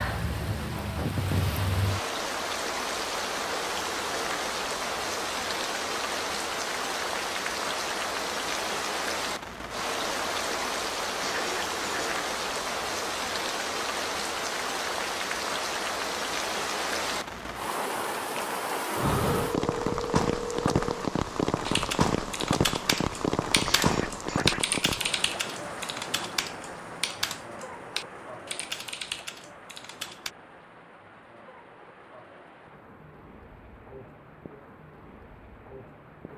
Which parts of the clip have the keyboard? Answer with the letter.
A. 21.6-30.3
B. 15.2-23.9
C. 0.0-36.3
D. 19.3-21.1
A.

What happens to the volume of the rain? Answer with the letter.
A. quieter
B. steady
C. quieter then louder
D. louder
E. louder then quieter
A.